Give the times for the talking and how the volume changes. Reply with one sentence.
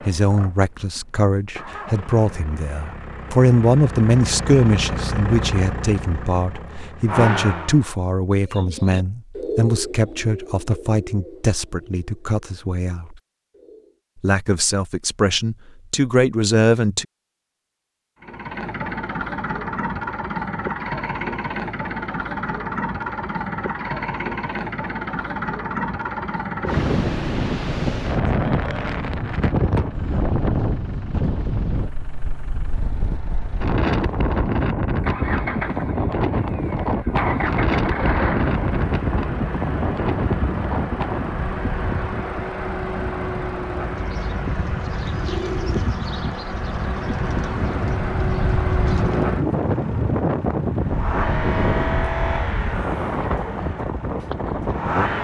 The talking can be heard from 0.0 to 13.2 s, getting louder then quieter; and briefly from 14.2 to 17.1 s.